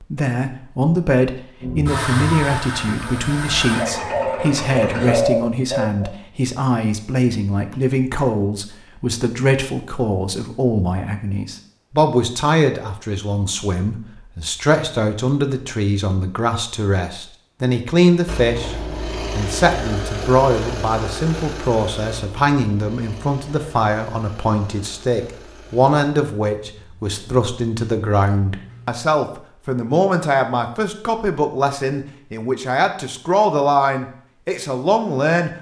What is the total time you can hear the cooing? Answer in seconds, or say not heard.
2 s.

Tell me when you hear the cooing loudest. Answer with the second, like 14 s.
5 s.